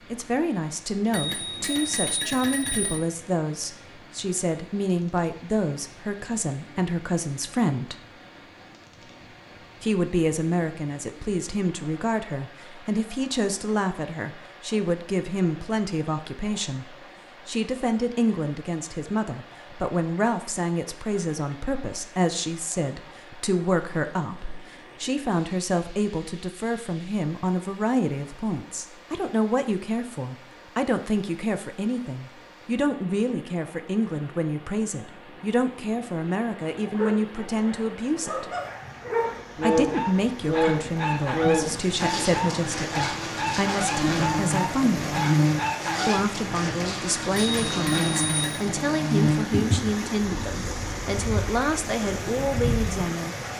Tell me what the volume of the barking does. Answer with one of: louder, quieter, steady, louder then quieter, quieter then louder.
louder.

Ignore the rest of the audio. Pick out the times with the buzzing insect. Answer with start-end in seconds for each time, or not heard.
39.2-53.5.